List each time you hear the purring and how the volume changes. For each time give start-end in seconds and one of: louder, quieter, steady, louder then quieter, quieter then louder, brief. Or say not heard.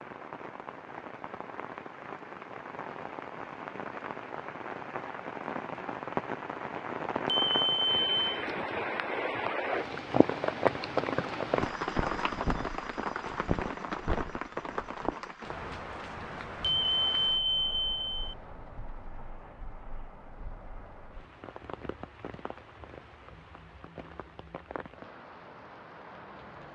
not heard.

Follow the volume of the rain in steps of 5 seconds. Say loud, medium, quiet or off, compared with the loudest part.
medium, loud, loud, medium, quiet, quiet.